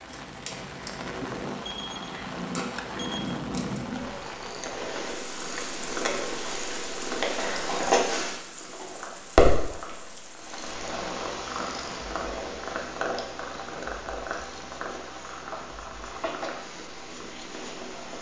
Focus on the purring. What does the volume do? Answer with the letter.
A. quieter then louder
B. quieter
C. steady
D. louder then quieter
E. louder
D.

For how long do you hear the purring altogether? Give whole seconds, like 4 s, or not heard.
18 s.